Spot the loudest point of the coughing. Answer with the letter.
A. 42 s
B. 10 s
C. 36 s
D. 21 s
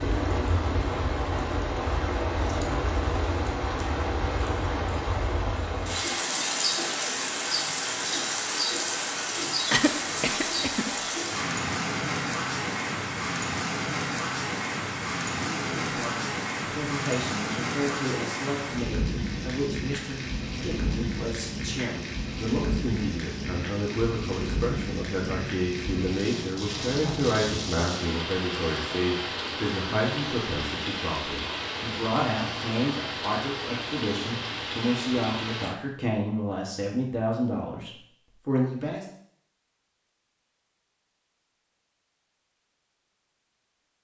B.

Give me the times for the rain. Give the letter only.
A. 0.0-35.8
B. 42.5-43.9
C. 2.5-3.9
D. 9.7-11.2
A.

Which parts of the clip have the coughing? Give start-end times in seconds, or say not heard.
9.7-11.2.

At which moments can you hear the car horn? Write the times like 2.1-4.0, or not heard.
not heard.